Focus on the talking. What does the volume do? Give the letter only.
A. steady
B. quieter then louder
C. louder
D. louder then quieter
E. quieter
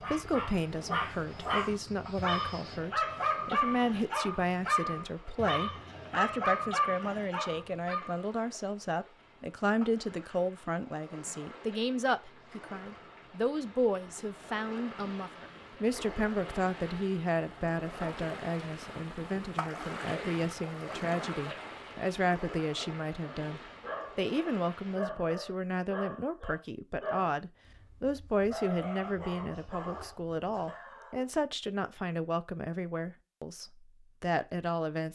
A.